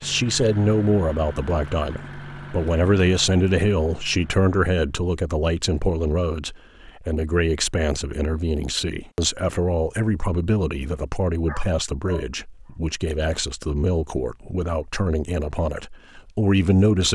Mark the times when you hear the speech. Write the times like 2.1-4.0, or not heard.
0.0-17.0.